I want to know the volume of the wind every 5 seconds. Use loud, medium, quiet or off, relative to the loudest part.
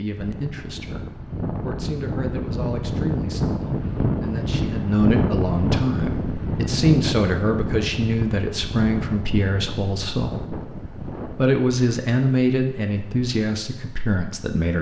loud, loud, medium.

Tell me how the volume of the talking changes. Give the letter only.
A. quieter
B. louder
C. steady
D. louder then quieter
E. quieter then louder
B.